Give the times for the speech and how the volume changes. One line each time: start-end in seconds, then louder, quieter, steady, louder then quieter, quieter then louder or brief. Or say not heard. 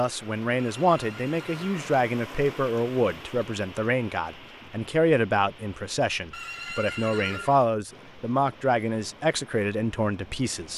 0.0-10.7 steady.